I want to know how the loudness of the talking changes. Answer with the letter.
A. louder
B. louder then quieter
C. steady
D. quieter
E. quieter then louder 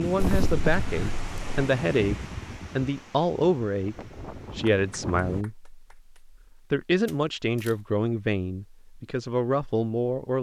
C.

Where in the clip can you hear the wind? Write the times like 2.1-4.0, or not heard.
0.0-5.5.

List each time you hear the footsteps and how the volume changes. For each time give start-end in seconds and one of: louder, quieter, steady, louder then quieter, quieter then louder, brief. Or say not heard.
not heard.